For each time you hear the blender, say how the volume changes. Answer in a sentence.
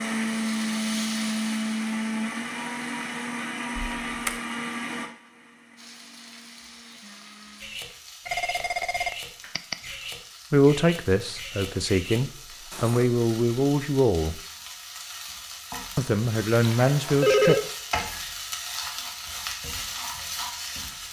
You can hear the blender from 0.0 to 7.8 s, getting quieter.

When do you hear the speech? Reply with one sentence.
You can hear the speech from 10.5 to 14.4 s and from 15.9 to 17.6 s.